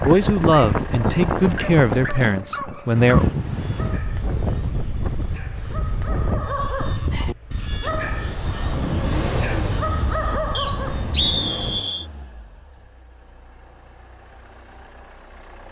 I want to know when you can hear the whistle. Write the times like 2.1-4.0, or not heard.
10.6-12.1.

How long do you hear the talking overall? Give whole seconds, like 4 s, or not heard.
3 s.